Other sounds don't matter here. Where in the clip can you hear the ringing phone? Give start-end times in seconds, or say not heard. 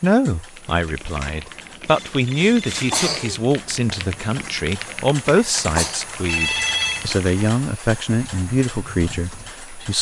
1.9-3.1, 6.2-7.1.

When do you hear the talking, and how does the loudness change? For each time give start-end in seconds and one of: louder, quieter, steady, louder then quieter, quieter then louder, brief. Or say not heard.
0.0-9.9 steady.